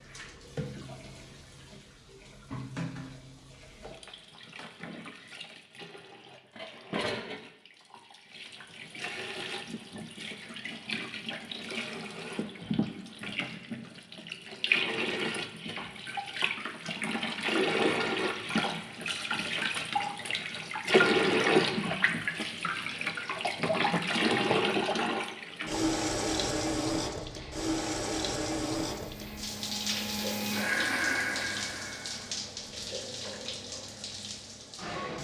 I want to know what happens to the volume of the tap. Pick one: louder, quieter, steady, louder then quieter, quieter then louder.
louder then quieter.